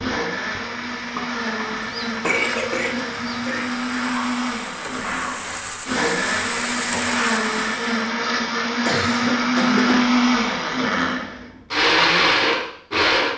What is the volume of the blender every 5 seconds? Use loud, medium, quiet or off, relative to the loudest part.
medium, loud, loud.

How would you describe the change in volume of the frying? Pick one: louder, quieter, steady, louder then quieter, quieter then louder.
louder.